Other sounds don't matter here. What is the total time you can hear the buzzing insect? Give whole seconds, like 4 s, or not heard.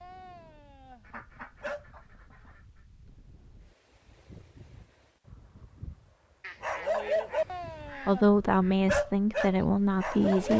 not heard.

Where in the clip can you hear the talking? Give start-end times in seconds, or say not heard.
8.1-10.5.